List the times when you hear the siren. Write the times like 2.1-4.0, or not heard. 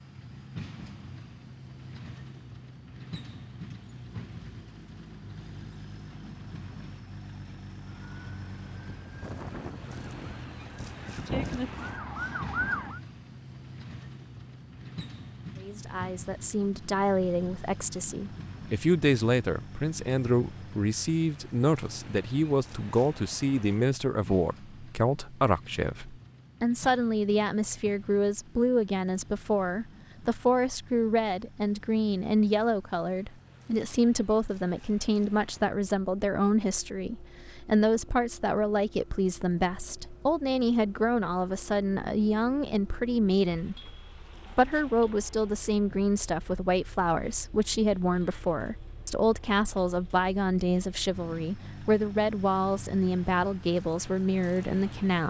7.8-13.0.